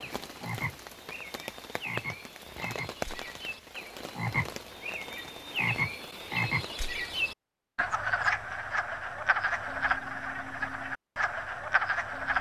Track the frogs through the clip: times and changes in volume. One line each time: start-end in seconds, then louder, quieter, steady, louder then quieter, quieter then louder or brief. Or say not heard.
0.0-12.3 louder.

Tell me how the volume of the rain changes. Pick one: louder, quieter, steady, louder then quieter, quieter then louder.
louder then quieter.